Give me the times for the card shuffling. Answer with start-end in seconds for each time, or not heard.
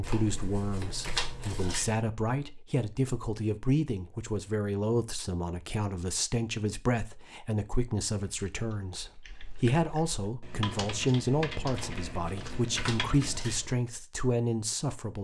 0.0-1.9, 11.7-13.8.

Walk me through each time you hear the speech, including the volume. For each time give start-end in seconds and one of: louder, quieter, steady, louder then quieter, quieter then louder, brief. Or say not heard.
0.0-15.2 steady.